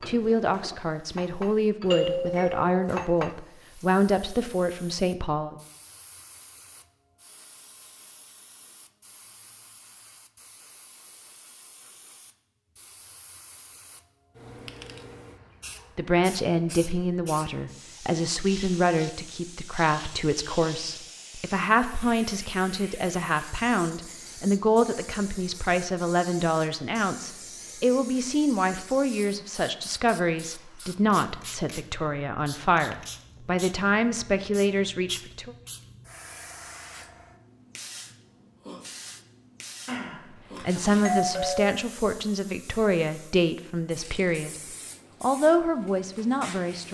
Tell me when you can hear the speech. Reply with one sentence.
The speech can be heard from 0.1 to 5.5 s, from 15.9 to 35.5 s, from 40.6 to 44.5 s and from 45.2 to 46.8 s.